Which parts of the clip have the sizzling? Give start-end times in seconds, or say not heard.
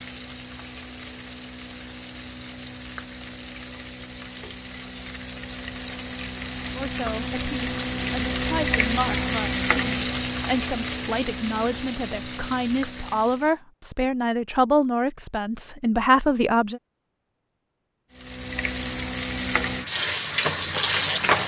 0.0-13.6, 18.1-21.4.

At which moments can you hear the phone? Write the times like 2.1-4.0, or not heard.
not heard.